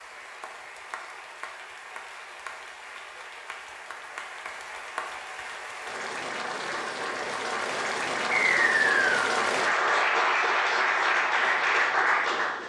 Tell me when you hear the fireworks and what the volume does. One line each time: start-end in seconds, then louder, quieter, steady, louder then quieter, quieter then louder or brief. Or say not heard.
not heard.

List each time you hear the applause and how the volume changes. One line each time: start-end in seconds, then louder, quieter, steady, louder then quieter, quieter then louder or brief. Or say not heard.
0.0-12.6 louder.